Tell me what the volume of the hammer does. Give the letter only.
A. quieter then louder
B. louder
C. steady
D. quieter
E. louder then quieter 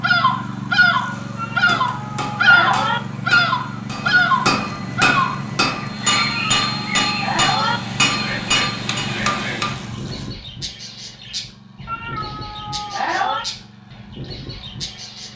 B.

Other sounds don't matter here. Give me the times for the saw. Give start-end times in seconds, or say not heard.
not heard.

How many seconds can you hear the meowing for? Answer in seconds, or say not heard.
5 s.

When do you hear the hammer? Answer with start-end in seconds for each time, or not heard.
1.1-9.9.